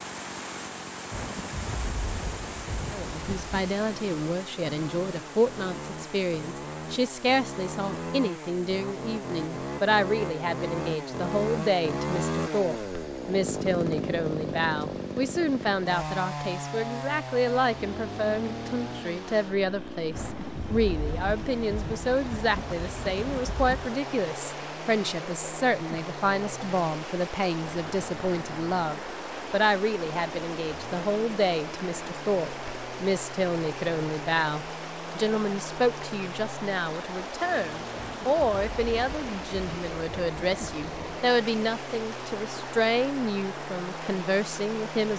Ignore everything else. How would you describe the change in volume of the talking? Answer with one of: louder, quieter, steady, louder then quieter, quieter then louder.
steady.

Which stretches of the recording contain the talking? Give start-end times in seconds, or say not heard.
2.9-45.1.